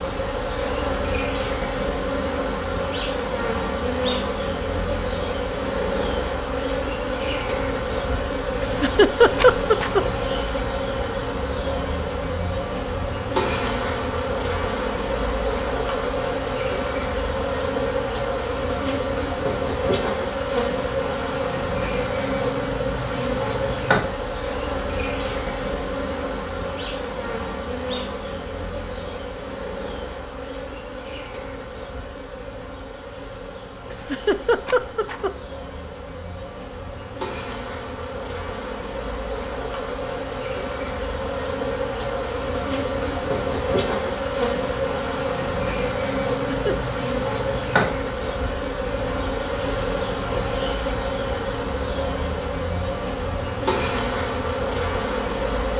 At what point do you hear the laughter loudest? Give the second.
9 s.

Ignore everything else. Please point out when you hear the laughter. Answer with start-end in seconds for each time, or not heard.
8.6-10.0, 33.9-35.3, 46.5-47.0.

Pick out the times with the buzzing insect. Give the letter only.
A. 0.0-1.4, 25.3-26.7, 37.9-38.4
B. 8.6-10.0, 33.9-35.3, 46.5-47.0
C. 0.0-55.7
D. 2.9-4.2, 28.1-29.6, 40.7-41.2
C.